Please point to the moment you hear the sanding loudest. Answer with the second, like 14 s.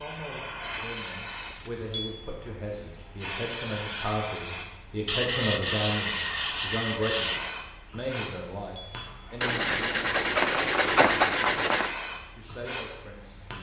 11 s.